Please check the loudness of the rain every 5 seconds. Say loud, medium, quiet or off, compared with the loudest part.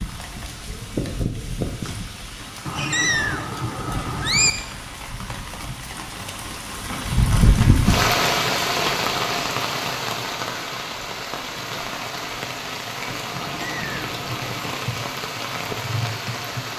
medium, loud, medium, medium.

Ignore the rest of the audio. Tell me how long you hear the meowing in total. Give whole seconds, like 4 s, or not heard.
3 s.